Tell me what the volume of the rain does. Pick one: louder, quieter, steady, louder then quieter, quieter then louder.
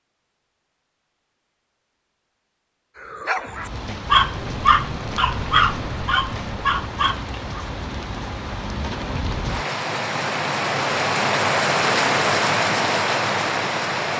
louder.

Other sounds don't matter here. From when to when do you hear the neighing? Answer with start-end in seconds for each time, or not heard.
not heard.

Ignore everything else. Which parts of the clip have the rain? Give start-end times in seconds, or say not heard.
3.5-14.1.